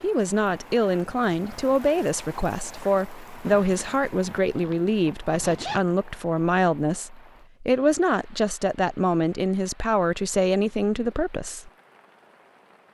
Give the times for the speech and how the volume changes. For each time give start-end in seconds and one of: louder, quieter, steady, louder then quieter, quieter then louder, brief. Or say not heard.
0.0-11.7 steady.